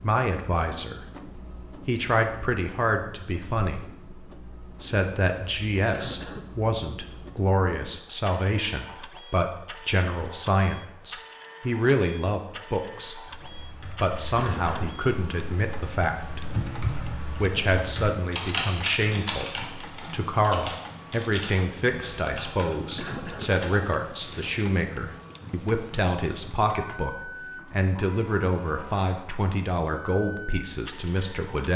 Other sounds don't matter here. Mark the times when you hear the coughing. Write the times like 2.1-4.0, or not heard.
5.9-6.5, 14.3-15.0, 22.9-23.6.